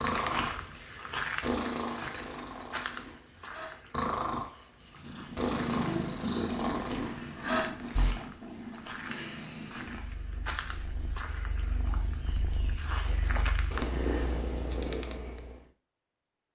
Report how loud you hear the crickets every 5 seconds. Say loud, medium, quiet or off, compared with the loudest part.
loud, medium, loud, off.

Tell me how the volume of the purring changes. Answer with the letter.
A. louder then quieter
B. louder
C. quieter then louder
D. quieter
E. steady
C.